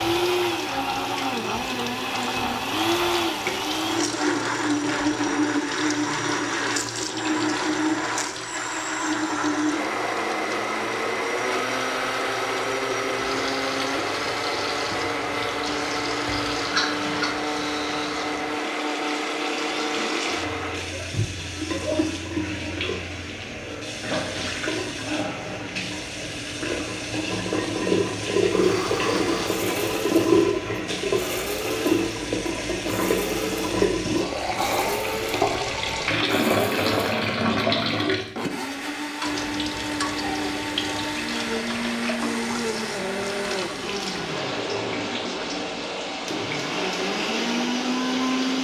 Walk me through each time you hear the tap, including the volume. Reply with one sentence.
The tap can be heard from 0.0 to 48.5 s, getting louder then quieter.